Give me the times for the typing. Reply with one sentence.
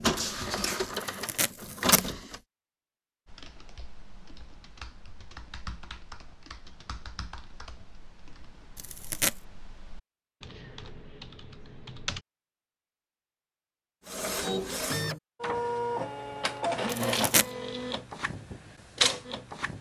You can hear the typing from 3.2 to 12.2 s.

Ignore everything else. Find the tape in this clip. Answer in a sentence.
You can hear the tape from 0.9 to 2.0 s, from 8.8 to 9.3 s and from 16.9 to 17.4 s.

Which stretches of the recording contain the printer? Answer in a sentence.
You can hear the printer from 0.0 to 2.4 s and from 14.1 to 19.7 s.